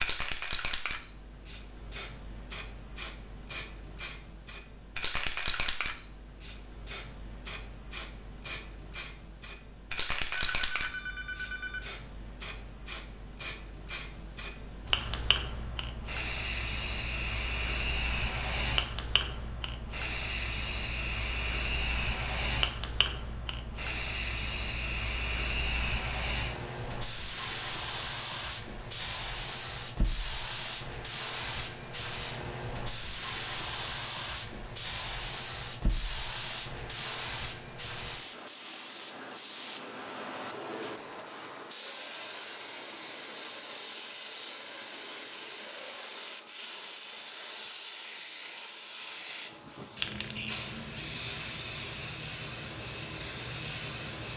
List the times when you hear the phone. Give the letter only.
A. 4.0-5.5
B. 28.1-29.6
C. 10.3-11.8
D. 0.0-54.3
C.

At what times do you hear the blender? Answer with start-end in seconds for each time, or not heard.
not heard.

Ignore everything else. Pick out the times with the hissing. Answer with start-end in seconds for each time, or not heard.
0.0-54.3.